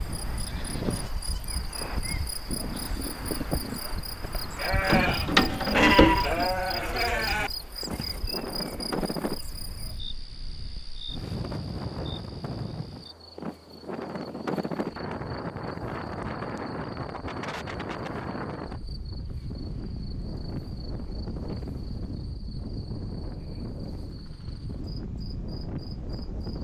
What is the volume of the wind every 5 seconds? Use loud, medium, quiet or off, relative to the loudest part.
medium, loud, loud, loud, loud, loud.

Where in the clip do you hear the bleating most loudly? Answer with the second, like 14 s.
6 s.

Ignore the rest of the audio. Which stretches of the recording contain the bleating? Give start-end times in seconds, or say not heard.
0.3-8.2.